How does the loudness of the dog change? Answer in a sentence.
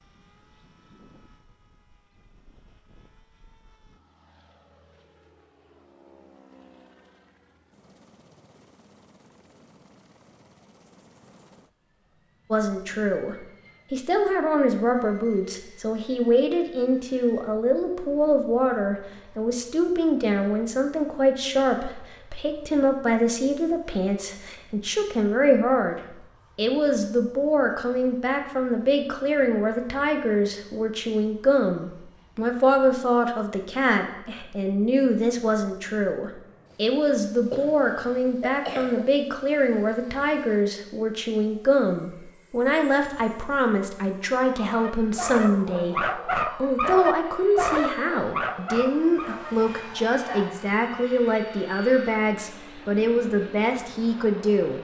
The volume of the dog goes down.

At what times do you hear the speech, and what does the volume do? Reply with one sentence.
The speech can be heard from 12.5 to 54.7 s, at a steady volume.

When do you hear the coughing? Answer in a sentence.
You can hear the coughing from 37.5 to 39.0 s.